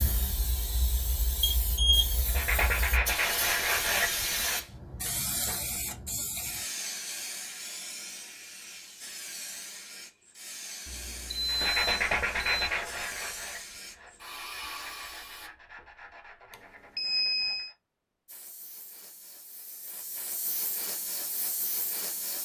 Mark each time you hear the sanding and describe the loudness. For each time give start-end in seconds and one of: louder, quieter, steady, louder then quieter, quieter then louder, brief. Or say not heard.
2.2-4.6 brief
11.4-17.8 quieter.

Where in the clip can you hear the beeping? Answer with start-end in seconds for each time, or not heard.
1.4-2.1, 10.8-12.7, 16.5-17.8.